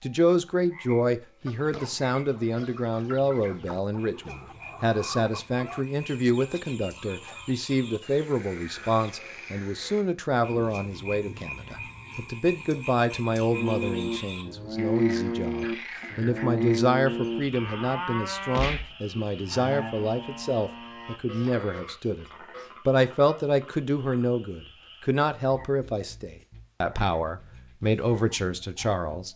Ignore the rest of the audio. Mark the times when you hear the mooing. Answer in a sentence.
You can hear the mooing from 13.5 to 22.7 s.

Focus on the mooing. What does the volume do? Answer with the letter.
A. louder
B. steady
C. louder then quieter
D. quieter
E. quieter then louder
D.